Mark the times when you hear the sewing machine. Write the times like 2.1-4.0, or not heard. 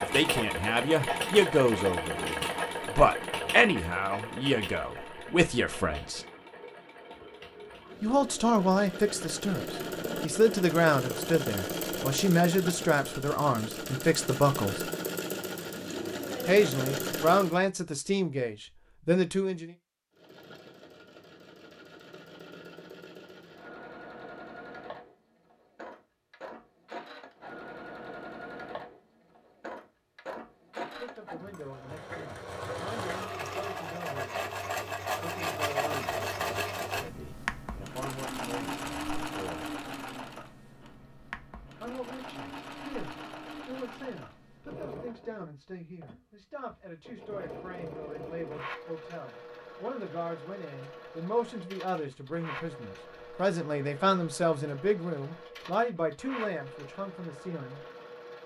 0.0-17.6, 20.1-58.4.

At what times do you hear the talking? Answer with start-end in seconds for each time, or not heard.
0.0-6.2, 8.0-14.9, 16.4-19.8, 30.8-34.5, 35.2-39.7, 41.8-57.9.